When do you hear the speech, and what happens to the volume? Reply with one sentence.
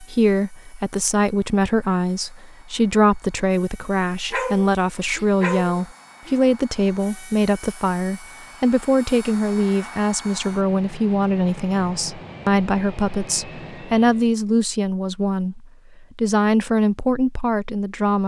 The speech can be heard from 0.0 to 18.2 s, at a steady volume.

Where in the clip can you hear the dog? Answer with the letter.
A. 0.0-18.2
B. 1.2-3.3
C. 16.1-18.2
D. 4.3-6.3
D.